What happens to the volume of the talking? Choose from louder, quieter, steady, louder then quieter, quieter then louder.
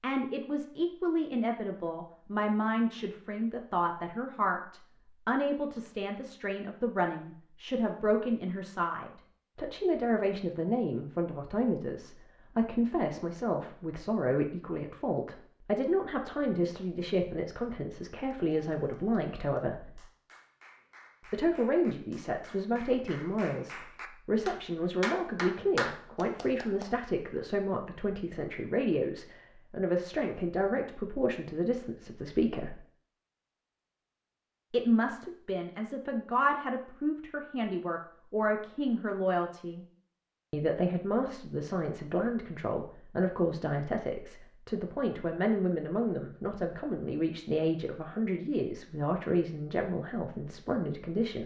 steady.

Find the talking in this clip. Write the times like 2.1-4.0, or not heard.
0.0-20.1, 21.3-32.8, 34.7-39.9, 40.5-51.4.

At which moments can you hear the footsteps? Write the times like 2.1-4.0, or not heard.
not heard.